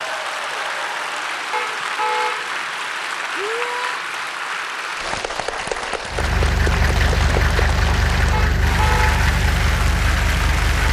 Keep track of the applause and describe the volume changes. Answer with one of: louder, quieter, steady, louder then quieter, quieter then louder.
steady.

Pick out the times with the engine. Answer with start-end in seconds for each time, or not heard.
6.0-10.8.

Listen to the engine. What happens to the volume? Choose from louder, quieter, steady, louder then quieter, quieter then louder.
steady.